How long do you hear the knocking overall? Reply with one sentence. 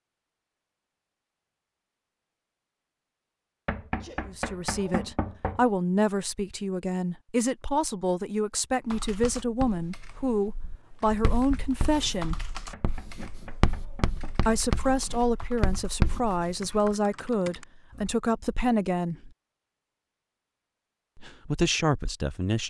You can hear the knocking for 4 seconds altogether.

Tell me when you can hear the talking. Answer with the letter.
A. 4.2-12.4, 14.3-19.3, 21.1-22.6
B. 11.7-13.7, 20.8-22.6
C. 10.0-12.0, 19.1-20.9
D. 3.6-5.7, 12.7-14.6
A.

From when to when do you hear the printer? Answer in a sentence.
You can't hear the printer here.